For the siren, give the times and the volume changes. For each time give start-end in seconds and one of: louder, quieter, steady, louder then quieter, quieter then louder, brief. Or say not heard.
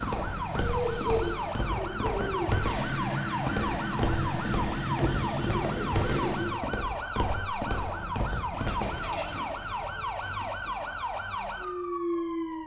0.0-12.6 steady.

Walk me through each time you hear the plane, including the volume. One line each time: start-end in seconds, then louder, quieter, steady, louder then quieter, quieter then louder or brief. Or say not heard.
0.0-6.6 louder.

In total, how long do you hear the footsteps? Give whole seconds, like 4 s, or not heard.
9 s.